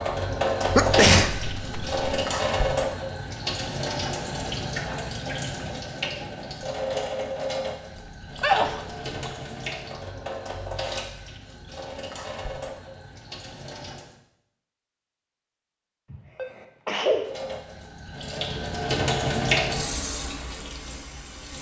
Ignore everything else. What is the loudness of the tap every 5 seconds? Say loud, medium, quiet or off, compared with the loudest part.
loud, medium, medium, loud, medium.